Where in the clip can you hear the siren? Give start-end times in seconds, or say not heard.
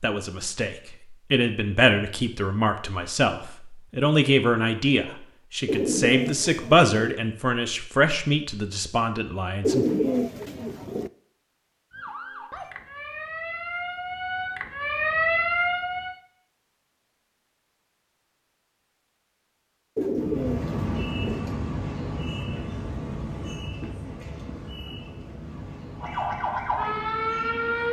11.9-16.1, 26.0-27.8.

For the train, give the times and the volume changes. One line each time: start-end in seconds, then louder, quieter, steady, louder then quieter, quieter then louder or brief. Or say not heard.
20.1-27.8 quieter.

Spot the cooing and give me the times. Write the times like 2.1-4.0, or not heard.
5.7-6.9, 9.6-11.1, 19.9-21.4.